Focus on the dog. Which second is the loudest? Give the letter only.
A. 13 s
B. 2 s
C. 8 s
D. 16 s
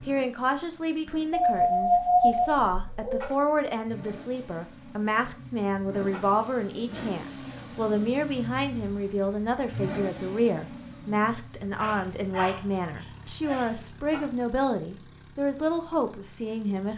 B.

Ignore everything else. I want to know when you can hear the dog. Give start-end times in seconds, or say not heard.
1.3-3.4, 11.8-13.7.